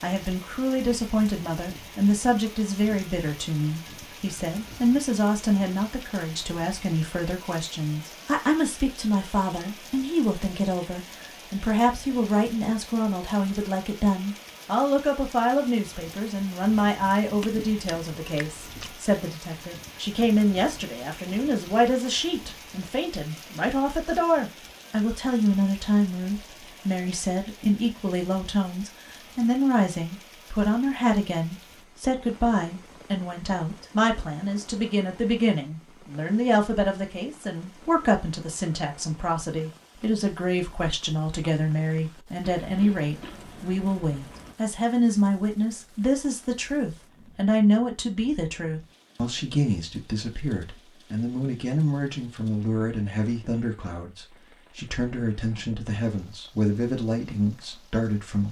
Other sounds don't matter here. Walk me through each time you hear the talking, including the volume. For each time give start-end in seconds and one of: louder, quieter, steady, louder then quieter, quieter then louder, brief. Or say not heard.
0.0-58.4 steady.